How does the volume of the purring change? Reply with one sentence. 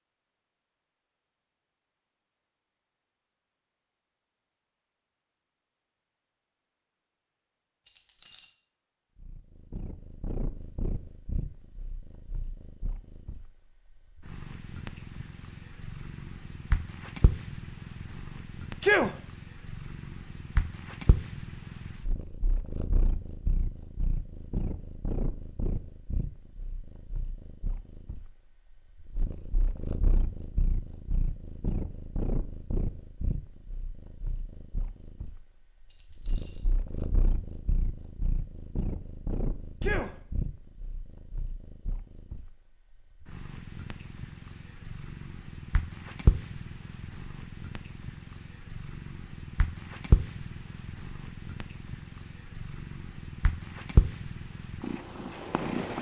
The volume of the purring goes up.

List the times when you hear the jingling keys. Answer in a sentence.
The jingling keys can be heard from 7.8 to 8.6 s and from 35.9 to 36.8 s.